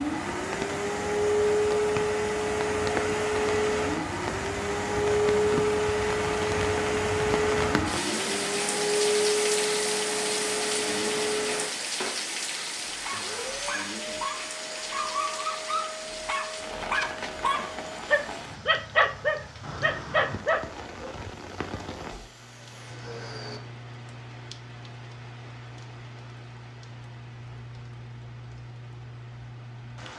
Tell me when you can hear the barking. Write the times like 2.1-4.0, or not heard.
12.8-21.3.